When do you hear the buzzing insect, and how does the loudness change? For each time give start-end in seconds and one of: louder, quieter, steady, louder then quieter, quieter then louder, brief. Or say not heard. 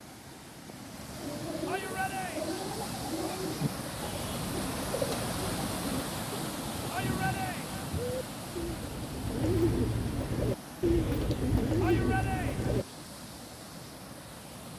not heard.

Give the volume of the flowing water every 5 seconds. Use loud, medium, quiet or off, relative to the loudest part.
loud, loud, medium.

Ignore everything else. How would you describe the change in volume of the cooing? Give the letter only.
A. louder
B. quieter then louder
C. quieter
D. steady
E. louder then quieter
A.